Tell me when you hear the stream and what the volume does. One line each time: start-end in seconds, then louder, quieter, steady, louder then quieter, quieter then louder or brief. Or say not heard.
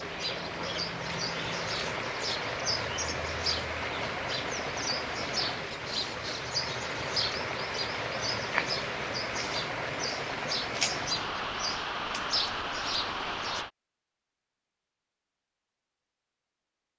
0.0-13.7 steady.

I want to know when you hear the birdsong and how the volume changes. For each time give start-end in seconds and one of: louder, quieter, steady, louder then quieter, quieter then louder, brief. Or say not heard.
0.0-13.7 steady.